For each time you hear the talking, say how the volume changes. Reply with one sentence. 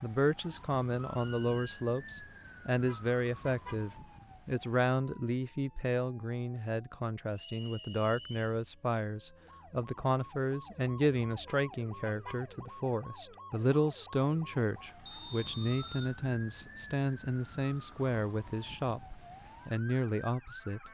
You can hear the talking from 0.0 to 20.8 s, at a steady volume.